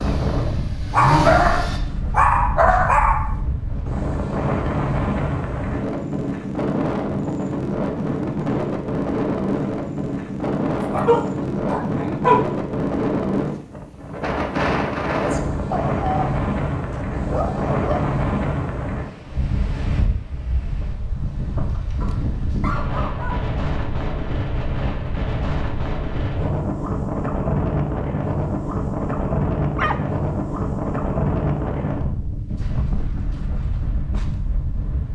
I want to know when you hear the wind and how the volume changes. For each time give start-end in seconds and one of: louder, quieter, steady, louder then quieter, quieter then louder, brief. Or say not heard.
0.0-35.0 steady.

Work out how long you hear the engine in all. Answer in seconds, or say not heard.
2 s.